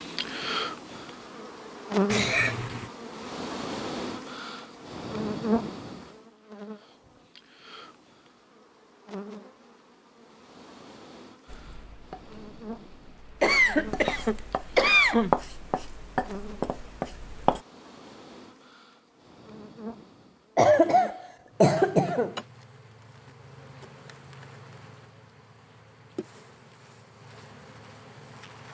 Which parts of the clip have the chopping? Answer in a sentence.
The chopping can be heard from 11.4 to 17.6 s.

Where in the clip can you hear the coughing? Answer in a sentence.
You can hear the coughing from 2.0 to 2.9 s, from 13.4 to 15.3 s and from 20.6 to 22.4 s.